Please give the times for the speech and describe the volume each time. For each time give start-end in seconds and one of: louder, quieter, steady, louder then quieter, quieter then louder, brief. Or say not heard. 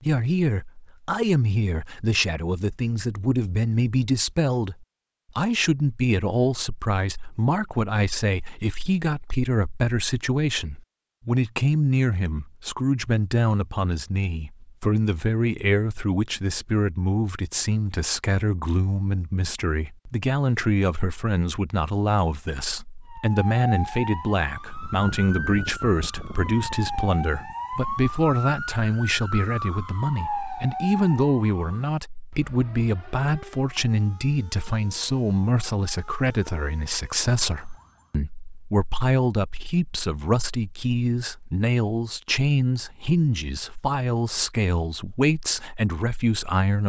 0.0-46.8 steady.